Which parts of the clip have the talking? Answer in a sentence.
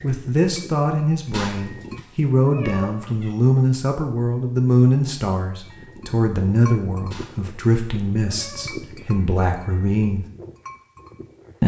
The talking can be heard from 0.0 to 10.2 s.